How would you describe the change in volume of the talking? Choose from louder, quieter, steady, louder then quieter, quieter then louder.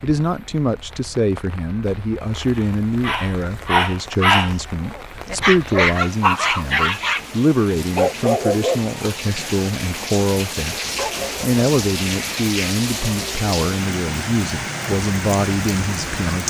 steady.